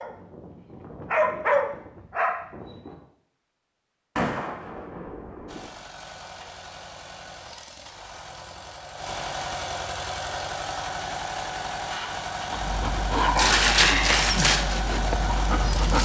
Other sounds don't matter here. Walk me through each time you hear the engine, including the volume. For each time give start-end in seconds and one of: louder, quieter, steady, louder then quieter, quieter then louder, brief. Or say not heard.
5.5-15.9 louder.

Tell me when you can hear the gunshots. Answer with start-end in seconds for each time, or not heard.
4.2-5.7.